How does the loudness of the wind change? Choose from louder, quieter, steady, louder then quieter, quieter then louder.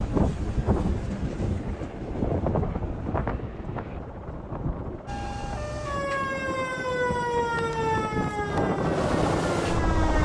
quieter then louder.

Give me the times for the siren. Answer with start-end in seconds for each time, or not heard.
5.0-10.2.